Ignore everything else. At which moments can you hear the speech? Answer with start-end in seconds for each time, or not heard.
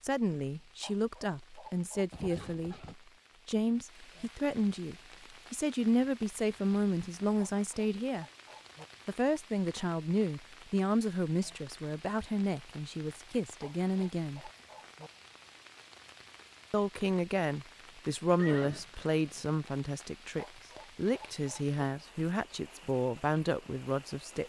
0.0-8.2, 9.1-14.5, 16.7-24.4.